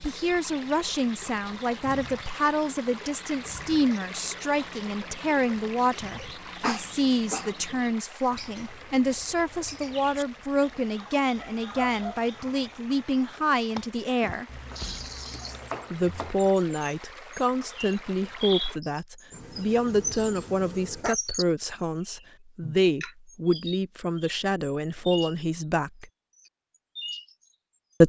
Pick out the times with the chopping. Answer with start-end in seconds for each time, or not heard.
14.4-16.4.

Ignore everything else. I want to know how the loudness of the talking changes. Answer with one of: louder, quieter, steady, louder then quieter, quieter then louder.
steady.